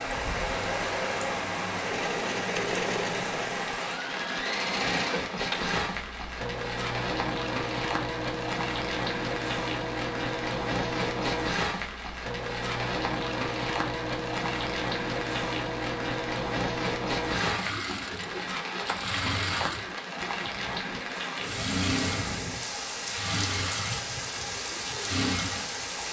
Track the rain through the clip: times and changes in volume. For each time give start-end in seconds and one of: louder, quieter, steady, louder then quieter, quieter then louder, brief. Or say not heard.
0.0-26.0 steady.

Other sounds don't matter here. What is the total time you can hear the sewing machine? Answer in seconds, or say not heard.
26 s.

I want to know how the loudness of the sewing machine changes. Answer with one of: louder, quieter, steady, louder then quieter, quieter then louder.
steady.